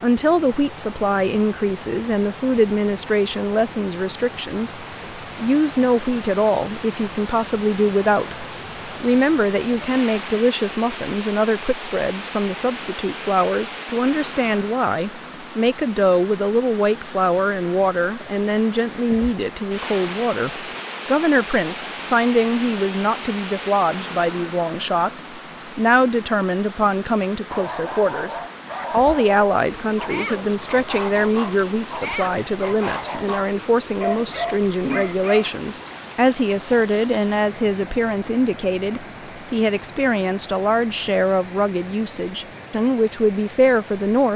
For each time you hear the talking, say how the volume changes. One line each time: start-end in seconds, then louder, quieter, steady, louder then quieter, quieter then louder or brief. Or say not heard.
0.0-44.3 steady.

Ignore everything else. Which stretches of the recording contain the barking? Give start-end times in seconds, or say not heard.
27.5-35.5.